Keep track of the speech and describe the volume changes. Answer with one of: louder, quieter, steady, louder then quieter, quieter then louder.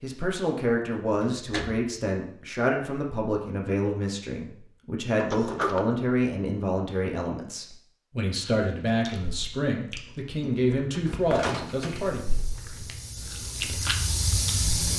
steady.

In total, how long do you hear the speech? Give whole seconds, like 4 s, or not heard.
12 s.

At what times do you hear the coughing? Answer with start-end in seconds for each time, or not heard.
not heard.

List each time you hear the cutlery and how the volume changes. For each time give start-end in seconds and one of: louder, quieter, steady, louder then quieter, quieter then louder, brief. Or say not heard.
not heard.